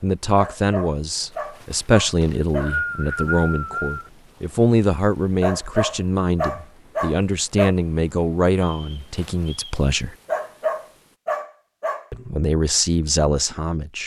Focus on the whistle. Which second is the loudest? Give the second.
3 s.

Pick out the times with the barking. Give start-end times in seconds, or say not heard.
0.3-2.8, 5.4-7.8, 10.2-12.1.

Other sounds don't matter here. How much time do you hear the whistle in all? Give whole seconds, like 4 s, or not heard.
3 s.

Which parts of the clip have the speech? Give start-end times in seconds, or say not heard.
0.0-10.2, 12.1-14.0.